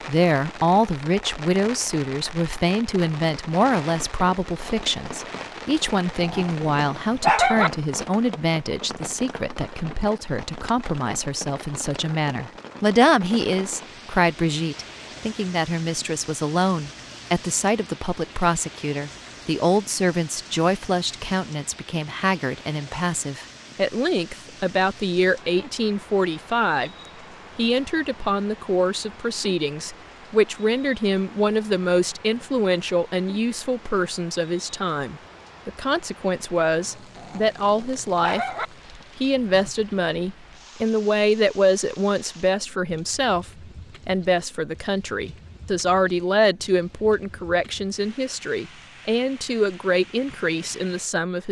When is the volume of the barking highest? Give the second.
7 s.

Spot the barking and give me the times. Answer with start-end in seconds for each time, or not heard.
6.2-7.7, 37.1-38.6.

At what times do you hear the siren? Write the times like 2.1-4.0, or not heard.
not heard.